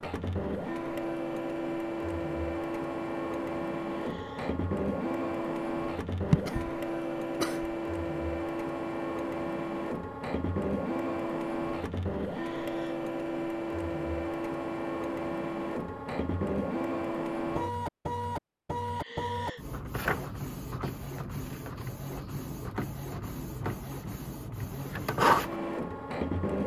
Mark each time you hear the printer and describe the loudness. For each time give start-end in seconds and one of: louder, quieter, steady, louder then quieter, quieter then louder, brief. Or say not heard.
0.0-26.6 steady.